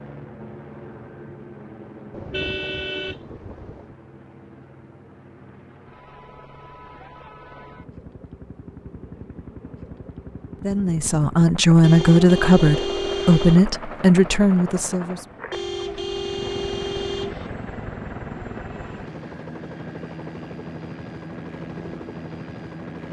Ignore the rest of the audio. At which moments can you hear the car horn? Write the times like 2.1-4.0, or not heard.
2.1-4.0, 11.8-13.7, 15.5-17.5.